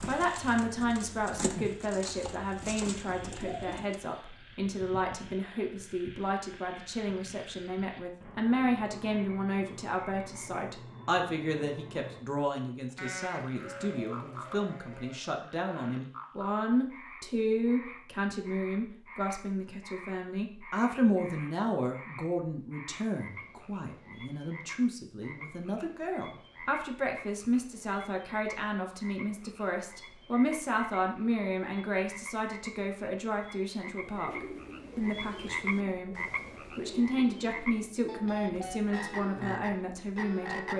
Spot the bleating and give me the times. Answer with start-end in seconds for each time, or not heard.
12.9-15.3.